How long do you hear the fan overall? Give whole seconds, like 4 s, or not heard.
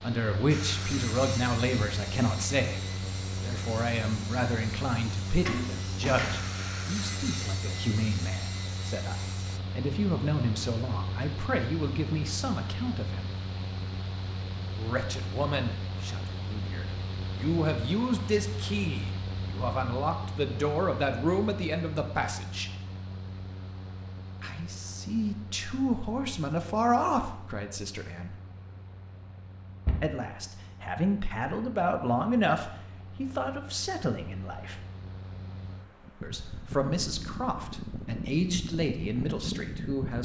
40 s.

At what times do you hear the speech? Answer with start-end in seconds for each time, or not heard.
0.0-13.3, 14.8-22.7, 24.4-28.4, 30.0-34.8, 36.2-40.1.